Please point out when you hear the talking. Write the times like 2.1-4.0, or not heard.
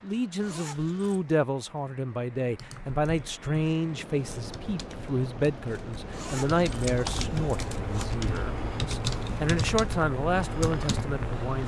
0.0-11.6.